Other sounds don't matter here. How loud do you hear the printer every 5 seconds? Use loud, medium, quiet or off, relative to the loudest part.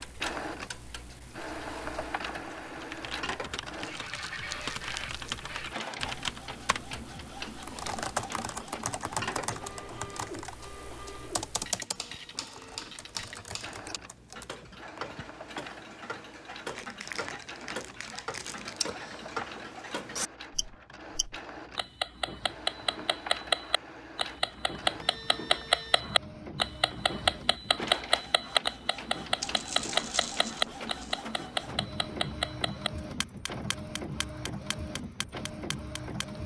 loud, loud, medium, medium, medium, loud, loud, loud.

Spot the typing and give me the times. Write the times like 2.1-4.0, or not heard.
2.7-14.6.